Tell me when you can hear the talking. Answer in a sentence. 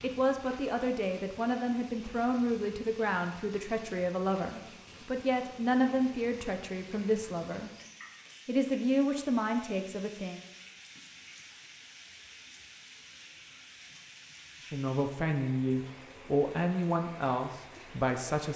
The talking can be heard from 0.0 to 7.7 s, from 8.4 to 10.4 s and from 14.6 to 18.5 s.